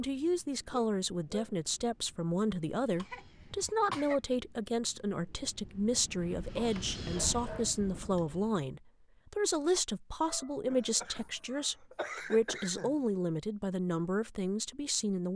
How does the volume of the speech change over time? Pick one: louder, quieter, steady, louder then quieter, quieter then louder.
steady.